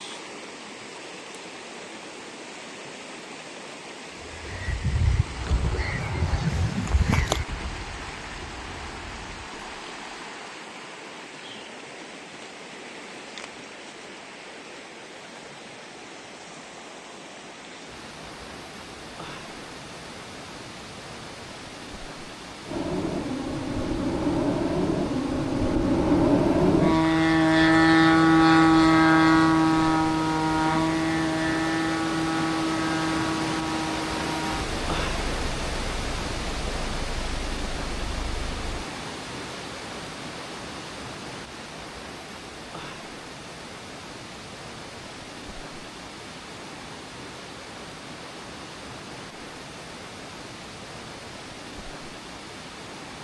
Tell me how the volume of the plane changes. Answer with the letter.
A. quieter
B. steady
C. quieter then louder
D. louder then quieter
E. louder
D.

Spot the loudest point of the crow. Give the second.
7 s.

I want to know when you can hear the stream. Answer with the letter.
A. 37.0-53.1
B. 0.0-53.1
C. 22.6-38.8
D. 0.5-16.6
B.